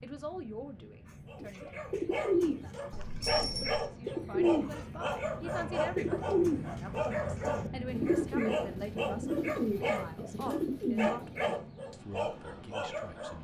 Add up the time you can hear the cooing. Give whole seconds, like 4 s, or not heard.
10 s.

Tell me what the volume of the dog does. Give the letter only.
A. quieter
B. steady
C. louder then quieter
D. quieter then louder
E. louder
B.